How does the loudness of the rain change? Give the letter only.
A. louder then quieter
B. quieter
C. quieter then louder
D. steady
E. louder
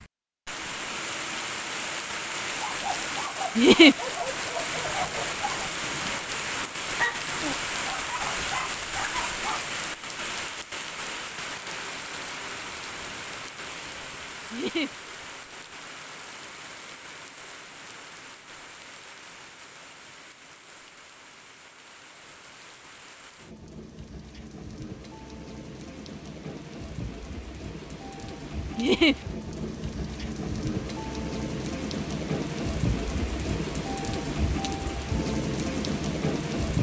C.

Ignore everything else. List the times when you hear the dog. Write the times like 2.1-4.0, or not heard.
2.5-9.6.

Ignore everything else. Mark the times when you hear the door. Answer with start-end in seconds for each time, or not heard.
not heard.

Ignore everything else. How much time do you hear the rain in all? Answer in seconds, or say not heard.
37 s.